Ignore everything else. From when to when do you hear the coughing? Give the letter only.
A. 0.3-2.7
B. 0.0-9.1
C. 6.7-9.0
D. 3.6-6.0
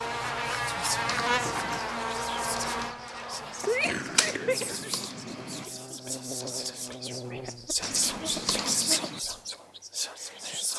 D.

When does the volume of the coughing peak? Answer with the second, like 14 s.
4 s.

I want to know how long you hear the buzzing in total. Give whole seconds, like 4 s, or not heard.
9 s.